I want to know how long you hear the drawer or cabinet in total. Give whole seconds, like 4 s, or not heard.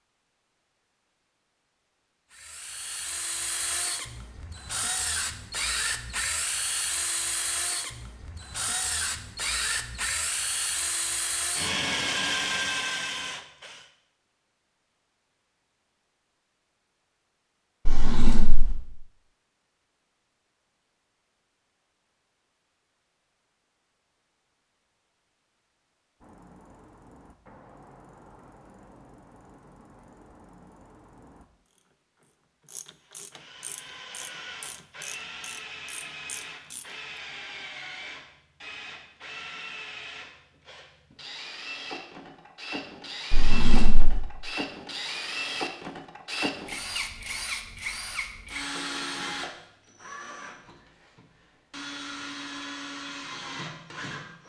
2 s.